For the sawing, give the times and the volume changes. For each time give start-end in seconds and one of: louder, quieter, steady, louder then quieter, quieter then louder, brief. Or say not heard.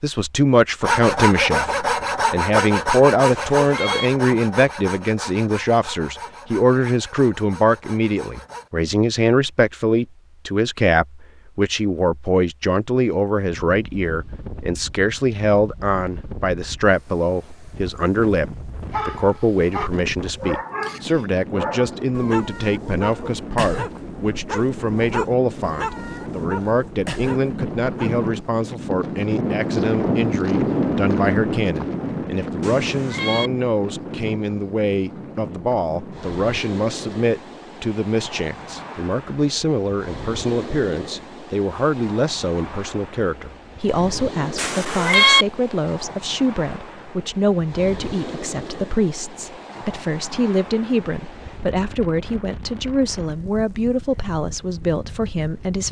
0.8-8.7 quieter.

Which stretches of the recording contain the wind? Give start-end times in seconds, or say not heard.
13.3-55.8.